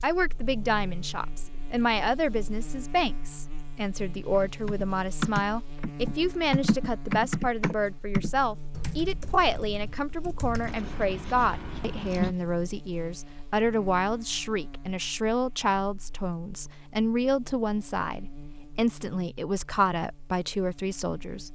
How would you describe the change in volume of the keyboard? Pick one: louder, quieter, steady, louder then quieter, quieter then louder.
quieter.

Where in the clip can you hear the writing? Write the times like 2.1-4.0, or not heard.
10.7-12.3.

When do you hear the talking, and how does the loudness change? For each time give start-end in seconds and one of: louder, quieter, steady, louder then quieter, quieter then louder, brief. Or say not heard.
0.0-21.4 steady.